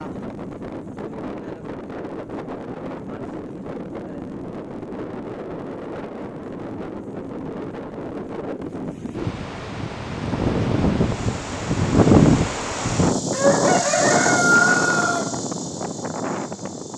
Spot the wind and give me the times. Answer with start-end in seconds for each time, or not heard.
0.0-16.9.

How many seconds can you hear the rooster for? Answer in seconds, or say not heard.
2 s.